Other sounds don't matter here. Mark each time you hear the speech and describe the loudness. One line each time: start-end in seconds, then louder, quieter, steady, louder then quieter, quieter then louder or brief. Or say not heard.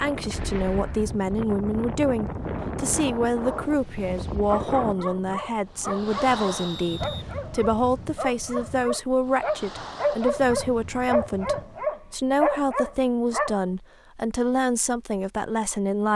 0.0-16.0 steady.